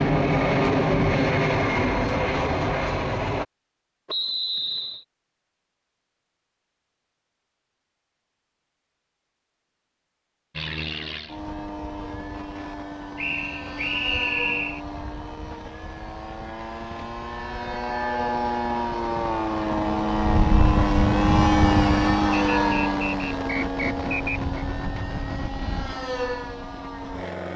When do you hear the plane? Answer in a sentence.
You can hear the plane from 0.0 to 3.5 s and from 10.5 to 27.5 s.